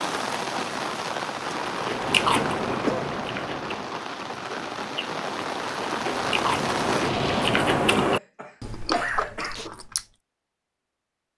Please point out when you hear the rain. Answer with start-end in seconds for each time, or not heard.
0.0-7.5.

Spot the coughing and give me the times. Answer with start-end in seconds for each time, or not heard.
2.2-3.1, 8.1-9.7.